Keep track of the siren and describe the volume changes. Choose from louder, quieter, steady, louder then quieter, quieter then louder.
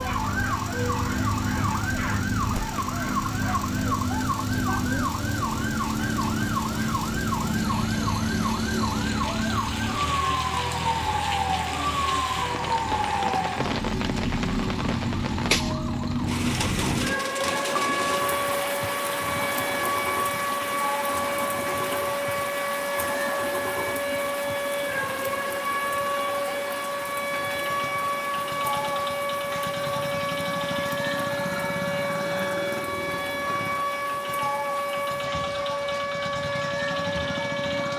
steady.